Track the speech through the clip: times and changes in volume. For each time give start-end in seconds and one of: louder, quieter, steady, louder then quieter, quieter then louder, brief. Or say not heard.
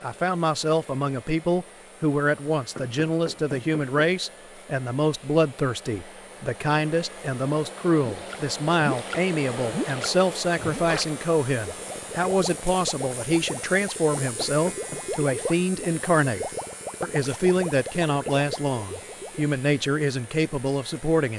0.0-21.3 steady.